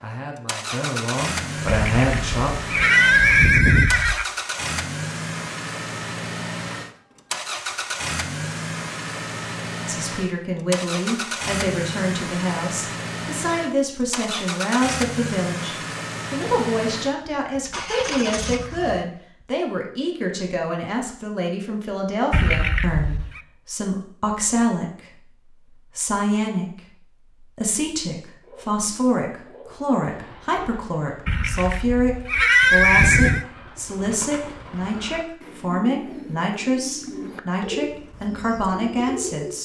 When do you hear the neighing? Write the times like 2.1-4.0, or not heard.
1.6-4.2, 22.3-23.4, 31.2-33.5.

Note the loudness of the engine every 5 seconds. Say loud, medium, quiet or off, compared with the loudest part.
loud, loud, loud, loud, off, off, off, off.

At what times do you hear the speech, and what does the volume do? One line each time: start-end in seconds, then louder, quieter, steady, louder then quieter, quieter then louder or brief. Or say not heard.
0.0-2.5 brief
9.8-39.6 steady.